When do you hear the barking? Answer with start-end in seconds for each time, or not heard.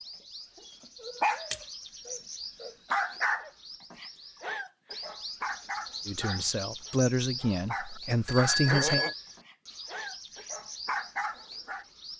0.7-11.8.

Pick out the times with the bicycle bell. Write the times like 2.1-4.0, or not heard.
8.2-9.2.